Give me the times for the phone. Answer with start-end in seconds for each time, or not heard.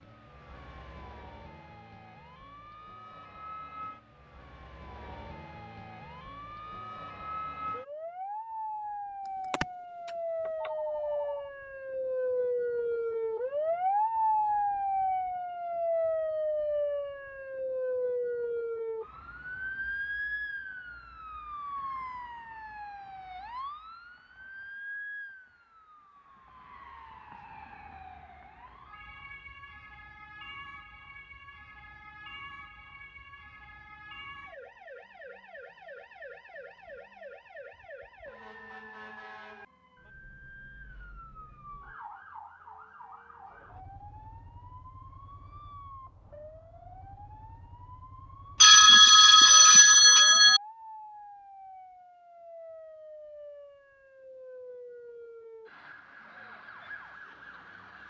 9.5-11.4, 48.6-50.6.